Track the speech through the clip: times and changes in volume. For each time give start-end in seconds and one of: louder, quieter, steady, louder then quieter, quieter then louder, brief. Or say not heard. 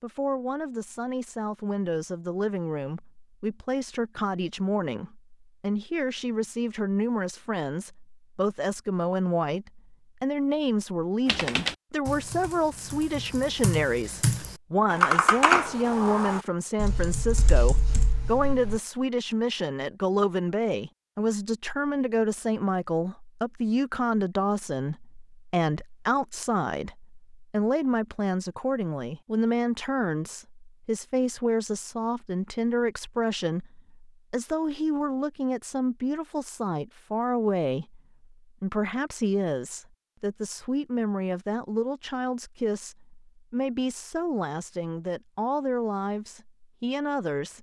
0.0-47.5 steady.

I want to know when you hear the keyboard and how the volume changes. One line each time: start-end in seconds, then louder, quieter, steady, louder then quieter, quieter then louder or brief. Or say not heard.
11.2-18.8 louder then quieter.